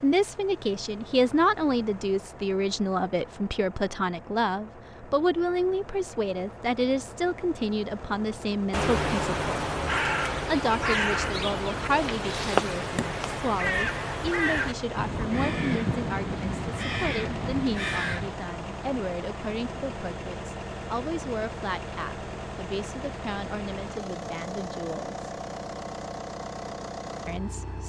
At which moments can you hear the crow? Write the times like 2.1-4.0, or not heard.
8.7-18.4.